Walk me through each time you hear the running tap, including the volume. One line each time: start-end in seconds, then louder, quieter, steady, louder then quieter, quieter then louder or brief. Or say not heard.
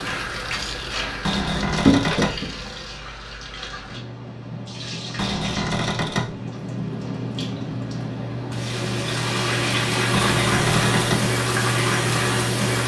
0.0-12.8 quieter then louder.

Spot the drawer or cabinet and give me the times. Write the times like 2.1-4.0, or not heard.
1.2-2.4, 5.2-6.3, 10.1-11.3.